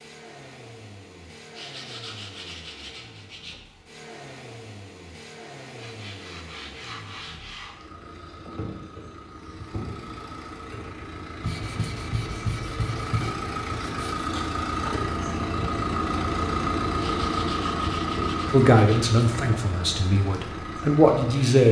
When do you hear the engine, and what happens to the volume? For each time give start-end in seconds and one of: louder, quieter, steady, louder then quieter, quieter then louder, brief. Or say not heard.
0.0-21.6 louder.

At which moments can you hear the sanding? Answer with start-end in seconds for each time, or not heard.
1.5-3.6, 5.8-7.8, 11.4-14.3, 16.9-19.2.